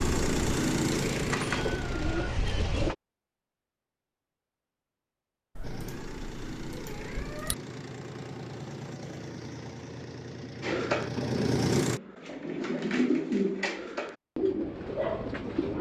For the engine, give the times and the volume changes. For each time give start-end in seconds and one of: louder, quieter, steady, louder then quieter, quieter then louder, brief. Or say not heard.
0.0-2.2 brief
5.6-12.0 louder.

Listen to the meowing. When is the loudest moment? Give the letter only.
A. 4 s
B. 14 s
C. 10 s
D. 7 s
D.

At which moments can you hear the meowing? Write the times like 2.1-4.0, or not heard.
5.5-7.5.